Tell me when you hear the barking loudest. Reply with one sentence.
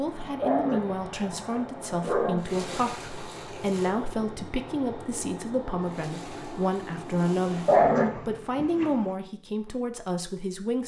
The volume of the barking peaks at 8 seconds.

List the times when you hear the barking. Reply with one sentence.
The barking can be heard from 0.4 to 2.8 s and from 7.7 to 8.9 s.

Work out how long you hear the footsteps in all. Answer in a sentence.
The footsteps can't be heard in this clip.